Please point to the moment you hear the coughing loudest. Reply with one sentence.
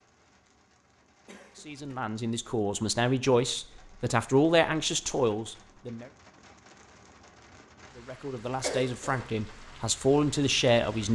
The loudest moment of the coughing is at 9 seconds.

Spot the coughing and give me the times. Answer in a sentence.
You can hear the coughing from 1.2 to 1.9 s and from 8.6 to 9.2 s.